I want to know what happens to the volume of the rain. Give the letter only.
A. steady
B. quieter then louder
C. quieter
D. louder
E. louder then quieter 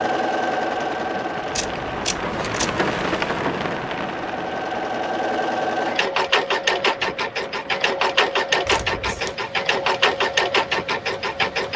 C.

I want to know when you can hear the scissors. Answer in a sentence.
You can hear the scissors from 1.5 to 2.9 s and from 8.7 to 9.3 s.